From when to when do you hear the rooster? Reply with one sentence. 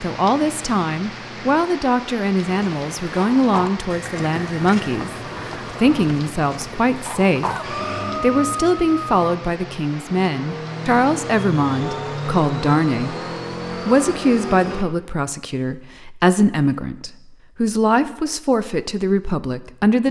You can hear the rooster from 7.4 to 9.1 s.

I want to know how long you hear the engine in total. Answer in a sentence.
The engine can be heard for 7 seconds in total.